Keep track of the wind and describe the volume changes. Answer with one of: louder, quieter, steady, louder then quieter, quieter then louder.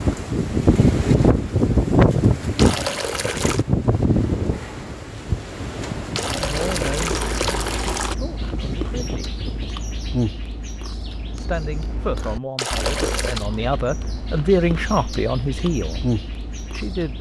quieter.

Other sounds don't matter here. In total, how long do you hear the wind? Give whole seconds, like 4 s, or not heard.
10 s.